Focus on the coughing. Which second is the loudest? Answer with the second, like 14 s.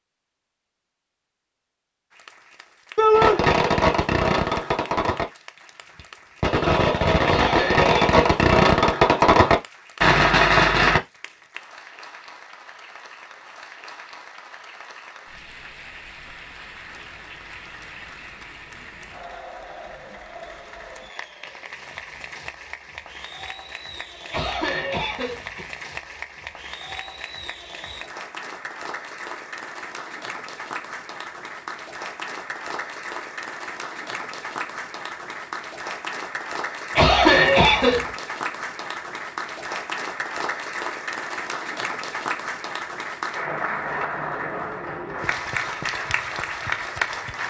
37 s.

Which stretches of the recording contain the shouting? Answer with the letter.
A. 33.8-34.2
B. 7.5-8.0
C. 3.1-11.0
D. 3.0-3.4
D.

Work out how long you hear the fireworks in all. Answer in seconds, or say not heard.
8 s.